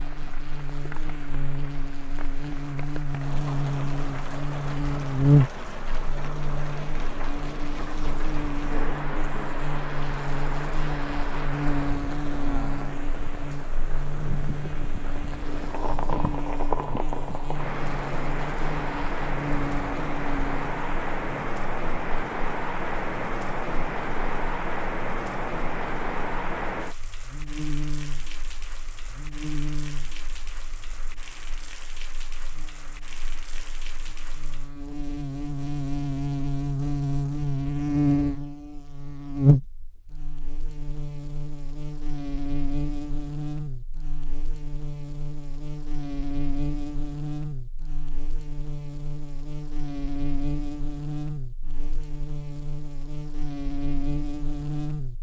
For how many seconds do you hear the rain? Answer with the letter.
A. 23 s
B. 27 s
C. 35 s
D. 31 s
C.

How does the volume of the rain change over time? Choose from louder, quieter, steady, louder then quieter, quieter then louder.
louder then quieter.